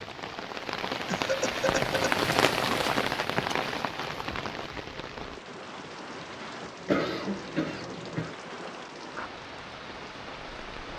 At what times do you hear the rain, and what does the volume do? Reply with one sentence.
The rain can be heard from 0.0 to 10.9 s, getting quieter.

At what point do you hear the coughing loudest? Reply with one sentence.
The volume of the coughing peaks at 7 seconds.